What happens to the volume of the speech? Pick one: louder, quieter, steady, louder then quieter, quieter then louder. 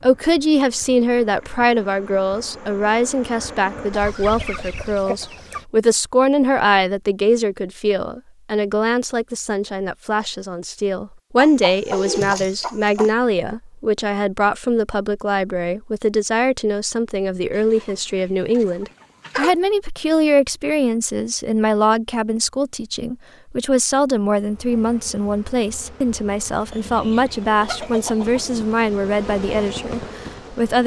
steady.